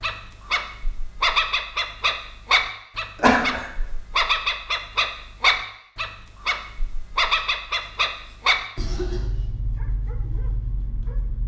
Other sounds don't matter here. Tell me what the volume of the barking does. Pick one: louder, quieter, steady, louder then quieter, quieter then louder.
quieter.